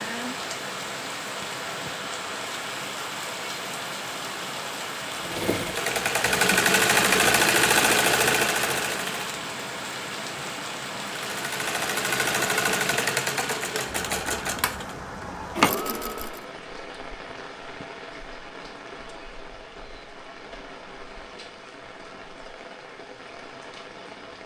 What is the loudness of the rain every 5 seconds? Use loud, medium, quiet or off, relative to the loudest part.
loud, loud, loud, medium, medium.